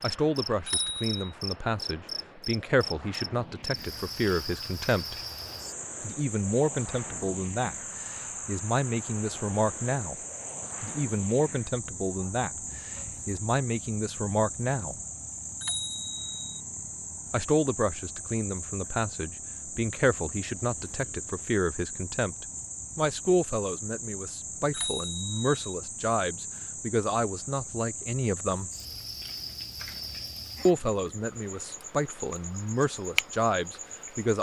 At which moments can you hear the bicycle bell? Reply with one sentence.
The bicycle bell can be heard from 0.7 to 1.1 s, from 15.6 to 16.6 s and from 24.7 to 25.6 s.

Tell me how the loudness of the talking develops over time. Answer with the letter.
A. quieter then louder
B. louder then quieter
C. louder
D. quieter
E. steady
E.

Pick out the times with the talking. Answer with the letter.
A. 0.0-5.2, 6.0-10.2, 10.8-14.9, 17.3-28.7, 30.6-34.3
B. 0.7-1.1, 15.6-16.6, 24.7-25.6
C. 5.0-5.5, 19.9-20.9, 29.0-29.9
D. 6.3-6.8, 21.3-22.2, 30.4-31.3
A.